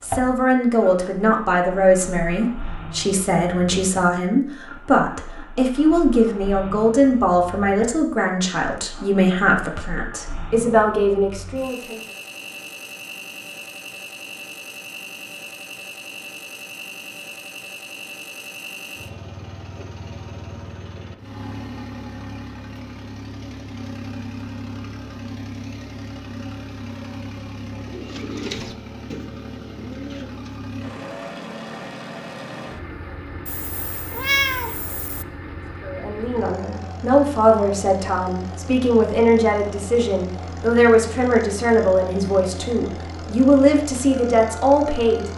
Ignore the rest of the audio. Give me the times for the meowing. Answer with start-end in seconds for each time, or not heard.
33.5-35.2.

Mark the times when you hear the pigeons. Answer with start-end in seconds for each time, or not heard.
27.8-30.4.